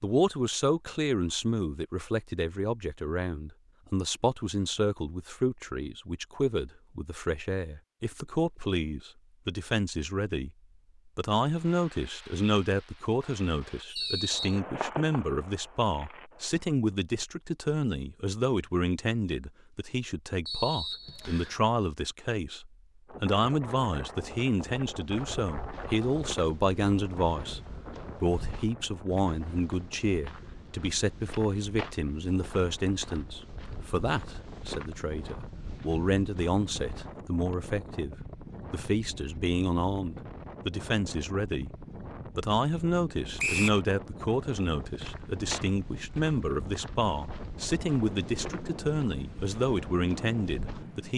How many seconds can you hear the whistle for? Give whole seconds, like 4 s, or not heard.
2 s.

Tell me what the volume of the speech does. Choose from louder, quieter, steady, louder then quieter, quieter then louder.
steady.